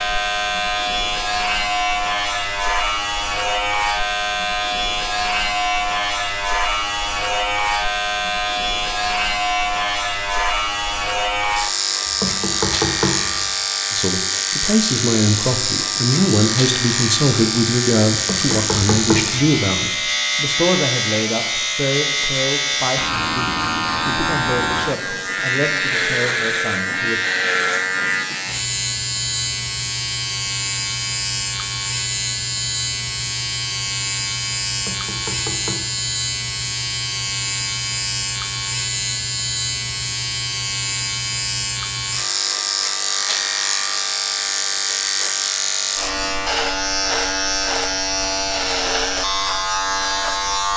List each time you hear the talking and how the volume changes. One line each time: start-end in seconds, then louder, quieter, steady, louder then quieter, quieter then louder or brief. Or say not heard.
13.9-27.2 quieter.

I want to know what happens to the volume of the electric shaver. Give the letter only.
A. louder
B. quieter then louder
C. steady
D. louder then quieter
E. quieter
C.